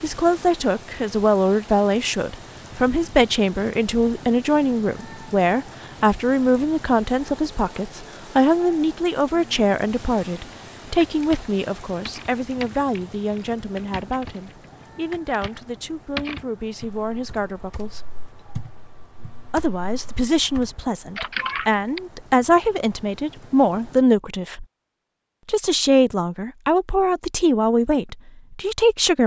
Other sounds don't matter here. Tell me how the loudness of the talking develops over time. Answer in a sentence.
The loudness of the talking goes down, then up.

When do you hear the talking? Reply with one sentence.
You can hear the talking from 0.0 to 18.1 s, from 19.5 to 24.6 s and from 25.4 to 29.2 s.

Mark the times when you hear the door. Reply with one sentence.
The door can't be heard in this clip.